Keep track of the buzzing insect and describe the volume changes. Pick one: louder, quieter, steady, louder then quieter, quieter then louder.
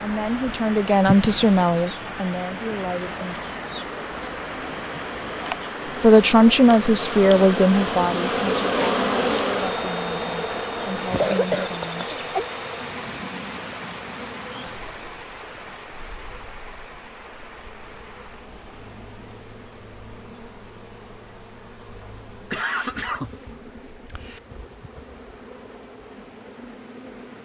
louder then quieter.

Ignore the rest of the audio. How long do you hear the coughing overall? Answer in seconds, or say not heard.
4 s.